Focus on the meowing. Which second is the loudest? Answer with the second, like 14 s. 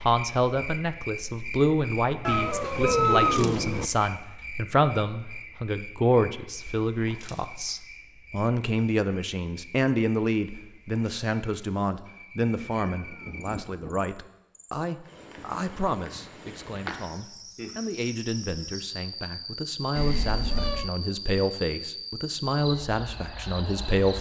3 s.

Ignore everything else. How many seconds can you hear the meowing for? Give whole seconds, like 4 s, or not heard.
4 s.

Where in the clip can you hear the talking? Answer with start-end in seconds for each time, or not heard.
0.0-24.1.